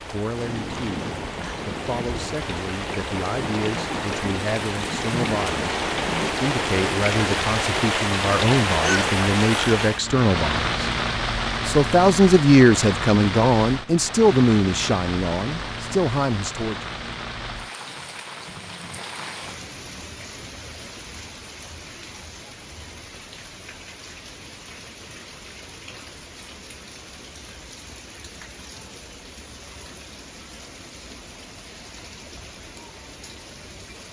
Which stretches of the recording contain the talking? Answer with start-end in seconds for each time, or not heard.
0.1-5.7, 6.4-10.7, 11.7-16.8.